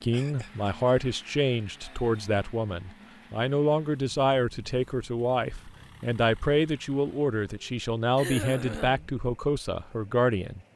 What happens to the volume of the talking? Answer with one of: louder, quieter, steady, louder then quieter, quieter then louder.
steady.